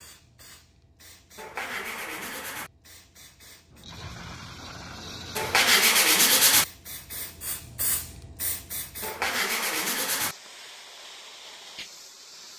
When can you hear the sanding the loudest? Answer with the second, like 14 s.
6 s.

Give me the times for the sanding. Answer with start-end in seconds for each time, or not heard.
1.4-2.7, 5.3-6.7, 9.0-10.3.